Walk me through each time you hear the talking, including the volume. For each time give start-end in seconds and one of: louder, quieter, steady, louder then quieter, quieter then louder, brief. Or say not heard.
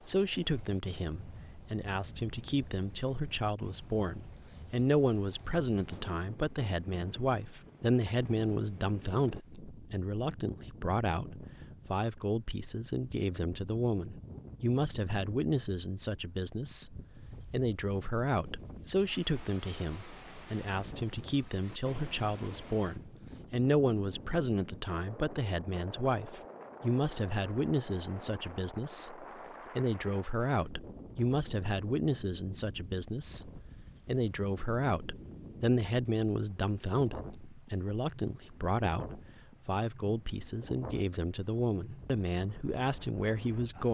0.1-43.8 steady.